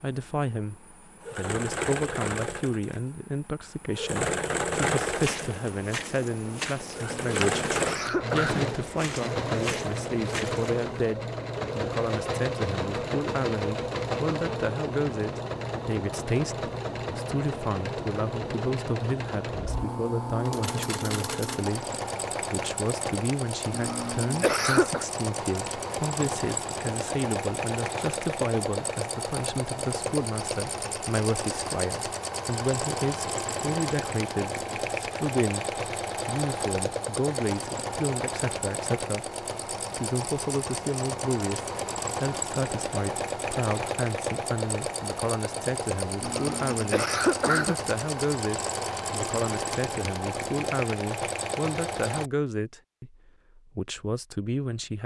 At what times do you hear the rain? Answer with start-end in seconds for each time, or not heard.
not heard.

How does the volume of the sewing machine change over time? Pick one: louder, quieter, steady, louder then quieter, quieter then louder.
steady.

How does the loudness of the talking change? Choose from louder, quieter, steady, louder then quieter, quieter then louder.
steady.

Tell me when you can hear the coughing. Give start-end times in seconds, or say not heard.
7.0-8.7, 23.7-25.1, 46.2-47.8.